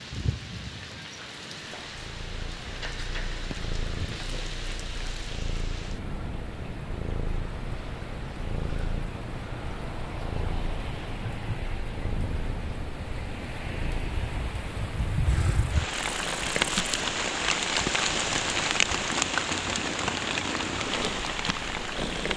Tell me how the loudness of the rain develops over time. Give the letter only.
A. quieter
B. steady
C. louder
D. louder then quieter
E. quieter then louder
C.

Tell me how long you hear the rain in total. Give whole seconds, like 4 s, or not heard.
22 s.